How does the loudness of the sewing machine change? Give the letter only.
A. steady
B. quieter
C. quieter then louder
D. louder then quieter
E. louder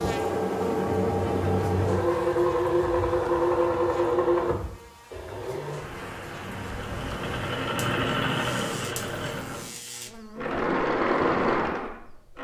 C.